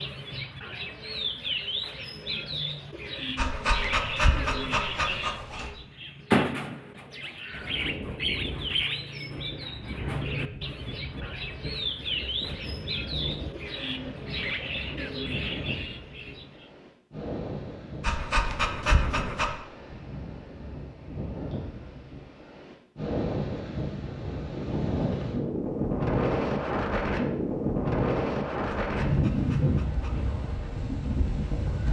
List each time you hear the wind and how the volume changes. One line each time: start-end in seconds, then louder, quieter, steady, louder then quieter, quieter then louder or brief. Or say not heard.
7.5-31.8 louder.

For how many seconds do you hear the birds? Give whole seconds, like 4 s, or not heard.
17 s.